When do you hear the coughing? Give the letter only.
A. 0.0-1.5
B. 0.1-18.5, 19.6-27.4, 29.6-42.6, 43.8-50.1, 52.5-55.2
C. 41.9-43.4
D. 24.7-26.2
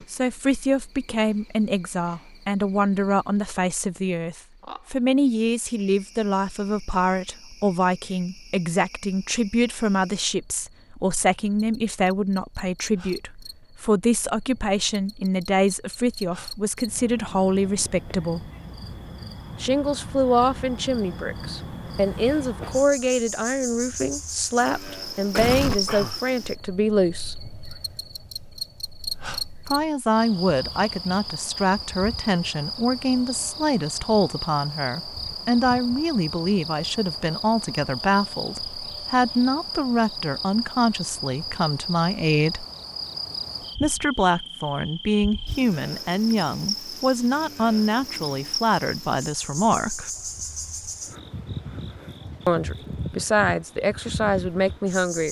D.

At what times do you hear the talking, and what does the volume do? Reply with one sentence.
The talking can be heard from 0.1 to 18.5 s, at a steady volume; from 19.6 to 27.4 s, at a steady volume; from 29.6 to 42.6 s, at a steady volume; from 43.8 to 50.1 s, at a steady volume; and briefly from 52.5 to 55.2 s.